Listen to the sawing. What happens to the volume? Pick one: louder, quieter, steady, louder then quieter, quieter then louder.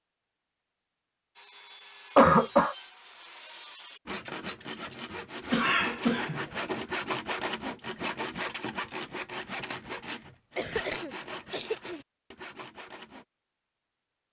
louder then quieter.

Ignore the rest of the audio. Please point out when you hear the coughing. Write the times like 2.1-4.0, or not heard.
2.1-2.8, 5.5-6.5, 10.6-12.1.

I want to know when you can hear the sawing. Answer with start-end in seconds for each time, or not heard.
1.4-13.2.